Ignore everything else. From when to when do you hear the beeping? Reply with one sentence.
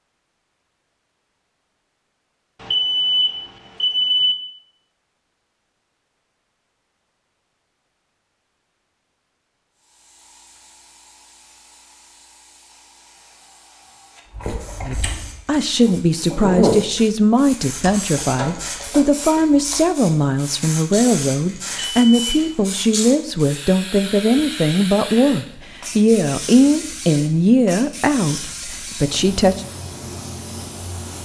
You can hear the beeping from 2.6 to 4.3 s and from 21.6 to 22.5 s.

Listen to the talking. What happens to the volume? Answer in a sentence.
The volume of the talking stays about the same.